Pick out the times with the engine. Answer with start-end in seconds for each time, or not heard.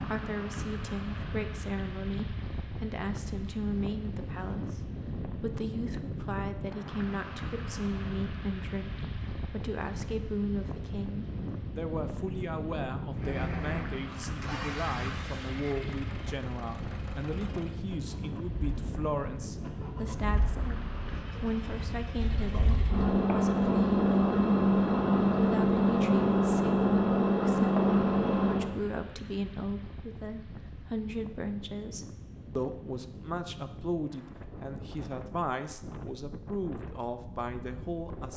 13.1-28.8.